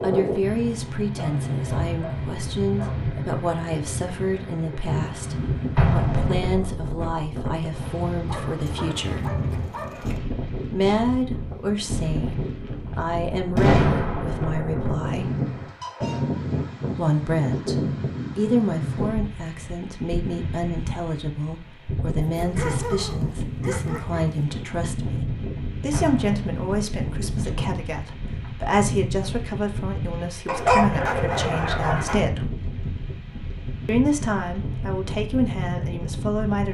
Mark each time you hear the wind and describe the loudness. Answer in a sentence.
You can hear the wind from 0.0 to 36.6 s, at a steady volume.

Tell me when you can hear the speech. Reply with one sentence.
You can hear the speech from 0.0 to 9.3 s, from 10.7 to 15.2 s, from 16.9 to 17.8 s, from 18.4 to 32.5 s and from 33.9 to 36.6 s.